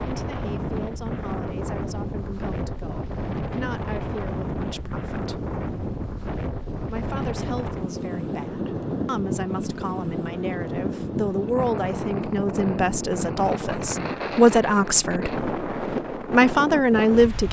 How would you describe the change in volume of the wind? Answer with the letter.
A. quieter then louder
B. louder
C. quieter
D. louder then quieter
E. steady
E.